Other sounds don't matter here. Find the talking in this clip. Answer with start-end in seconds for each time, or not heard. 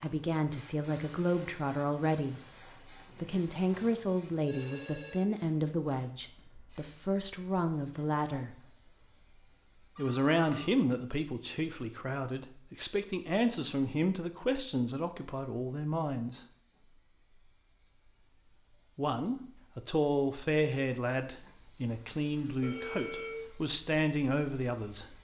0.0-2.4, 3.1-8.5, 9.9-16.4, 18.9-25.1.